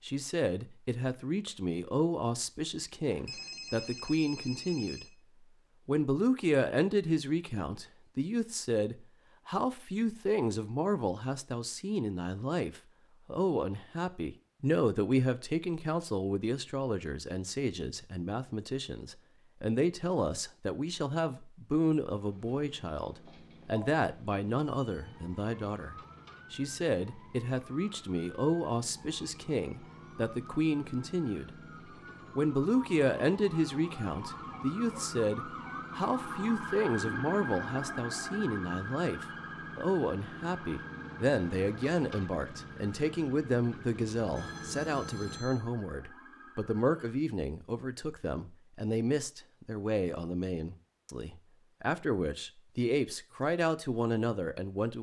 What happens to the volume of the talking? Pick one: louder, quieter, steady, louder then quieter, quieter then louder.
steady.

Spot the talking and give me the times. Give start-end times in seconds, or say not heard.
0.0-5.0, 5.8-31.6, 32.4-54.9.